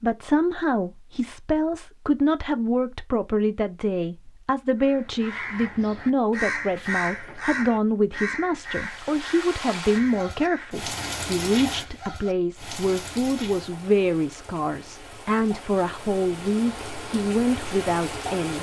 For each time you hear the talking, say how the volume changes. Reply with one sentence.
The talking can be heard from 0.0 to 18.5 s, at a steady volume.